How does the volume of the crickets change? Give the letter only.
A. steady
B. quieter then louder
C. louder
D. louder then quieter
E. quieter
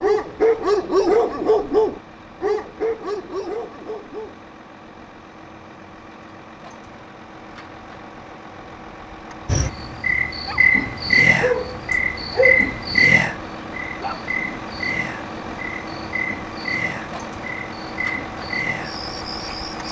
E.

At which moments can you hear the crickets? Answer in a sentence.
You can hear the crickets from 9.4 to 19.8 s.